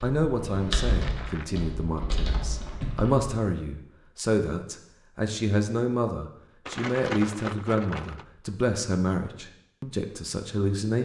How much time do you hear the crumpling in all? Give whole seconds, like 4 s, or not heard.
2 s.